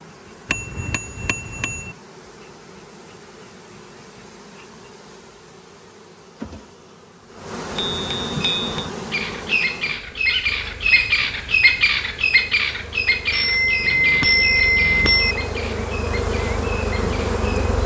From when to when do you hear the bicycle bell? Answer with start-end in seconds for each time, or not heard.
0.5-1.9, 7.8-8.9, 13.3-15.3.